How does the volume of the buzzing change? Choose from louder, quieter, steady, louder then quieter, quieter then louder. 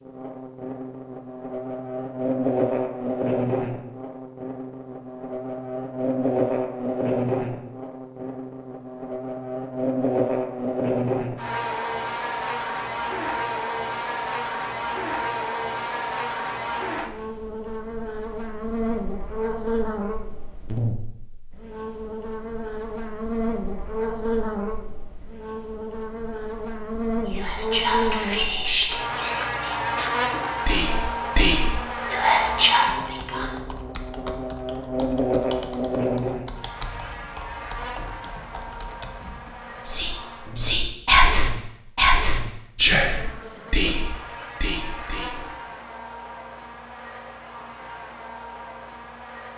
quieter.